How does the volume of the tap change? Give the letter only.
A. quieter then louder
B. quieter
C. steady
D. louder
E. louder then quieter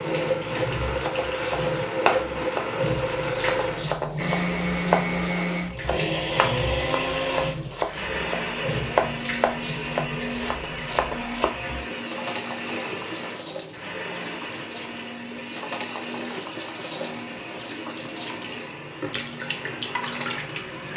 C.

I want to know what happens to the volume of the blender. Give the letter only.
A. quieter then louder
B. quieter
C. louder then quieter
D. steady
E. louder
B.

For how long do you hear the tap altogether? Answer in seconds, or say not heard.
21 s.